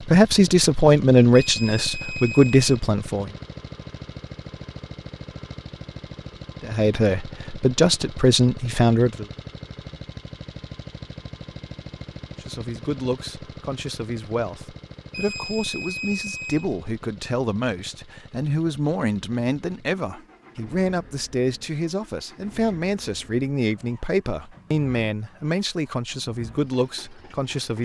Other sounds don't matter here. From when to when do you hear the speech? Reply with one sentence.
The speech can be heard from 0.0 to 3.3 s, from 6.6 to 9.2 s and from 12.4 to 27.8 s.